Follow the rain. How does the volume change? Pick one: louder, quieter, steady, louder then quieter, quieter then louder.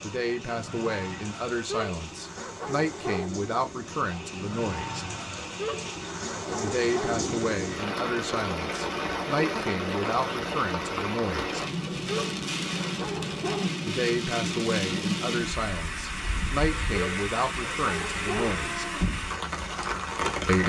louder.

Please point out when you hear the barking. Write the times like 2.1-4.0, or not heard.
1.5-3.3, 5.4-7.2, 11.9-13.7, 16.8-18.6.